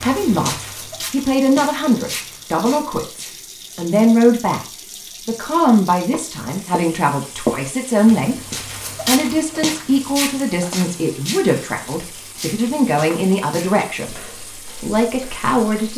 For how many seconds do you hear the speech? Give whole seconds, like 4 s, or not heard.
14 s.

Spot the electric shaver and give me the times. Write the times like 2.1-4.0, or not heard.
not heard.